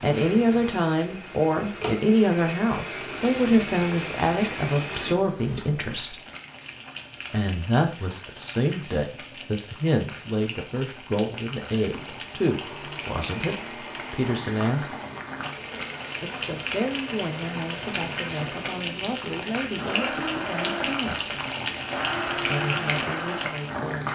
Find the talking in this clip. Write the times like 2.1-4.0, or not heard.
0.0-6.2, 7.3-15.0, 16.2-21.4, 22.4-24.1.